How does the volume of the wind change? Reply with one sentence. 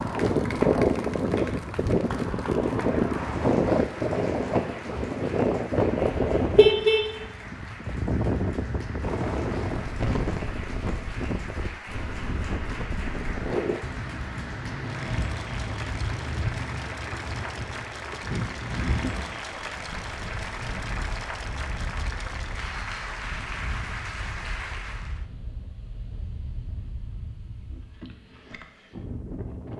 The loudness of the wind goes down.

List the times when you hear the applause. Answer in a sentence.
You can hear the applause from 0.0 to 25.2 s.